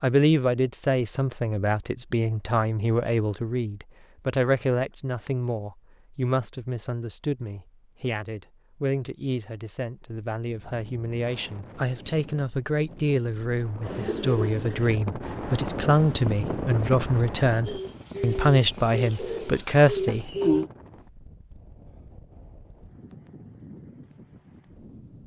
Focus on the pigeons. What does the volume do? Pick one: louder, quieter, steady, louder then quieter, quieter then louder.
quieter then louder.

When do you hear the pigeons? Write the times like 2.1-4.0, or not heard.
13.8-20.7.